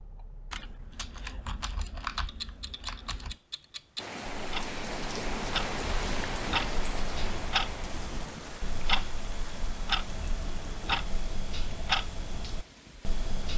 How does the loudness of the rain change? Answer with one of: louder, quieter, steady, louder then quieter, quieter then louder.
quieter.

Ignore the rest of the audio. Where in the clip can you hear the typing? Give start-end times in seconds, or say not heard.
0.5-3.4.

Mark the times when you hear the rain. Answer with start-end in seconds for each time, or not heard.
4.0-13.2.